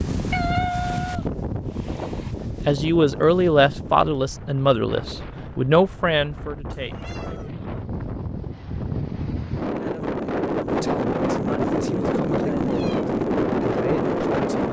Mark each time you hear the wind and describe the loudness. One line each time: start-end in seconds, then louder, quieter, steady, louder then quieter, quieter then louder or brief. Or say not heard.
0.0-14.6 quieter then louder.